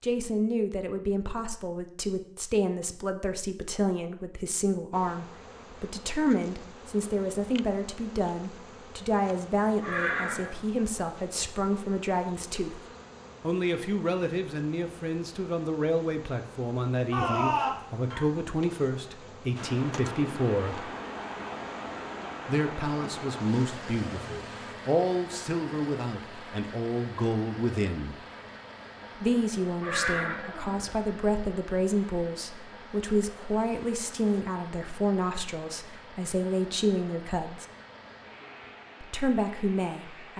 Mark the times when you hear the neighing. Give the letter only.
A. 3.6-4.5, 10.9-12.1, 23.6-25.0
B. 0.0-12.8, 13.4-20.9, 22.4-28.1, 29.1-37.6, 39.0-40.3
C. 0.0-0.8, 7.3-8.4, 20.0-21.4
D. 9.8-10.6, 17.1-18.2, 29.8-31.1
D.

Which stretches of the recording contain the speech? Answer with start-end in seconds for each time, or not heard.
0.0-12.8, 13.4-20.9, 22.4-28.1, 29.1-37.6, 39.0-40.3.